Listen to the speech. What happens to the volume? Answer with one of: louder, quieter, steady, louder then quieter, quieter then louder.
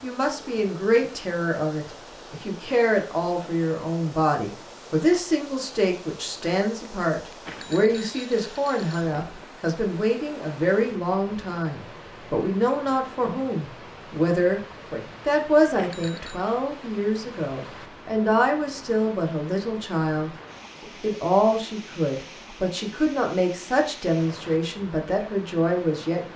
steady.